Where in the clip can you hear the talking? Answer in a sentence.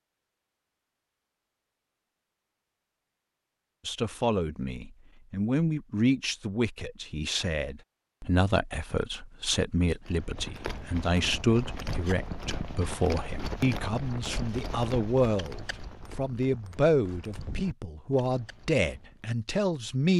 The talking can be heard from 3.9 to 20.1 s.